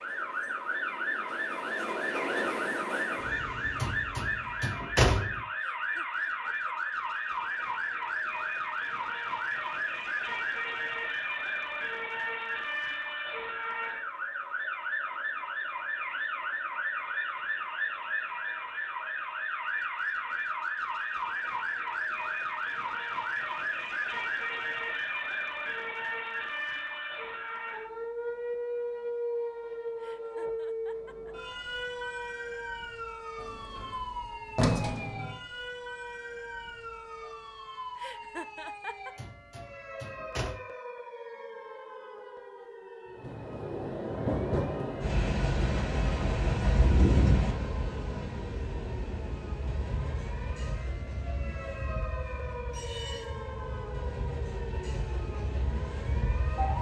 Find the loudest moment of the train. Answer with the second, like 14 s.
47 s.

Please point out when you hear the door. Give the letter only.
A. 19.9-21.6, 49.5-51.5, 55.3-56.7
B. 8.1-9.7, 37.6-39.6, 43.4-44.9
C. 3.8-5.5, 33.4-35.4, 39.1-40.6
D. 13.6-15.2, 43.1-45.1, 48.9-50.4
C.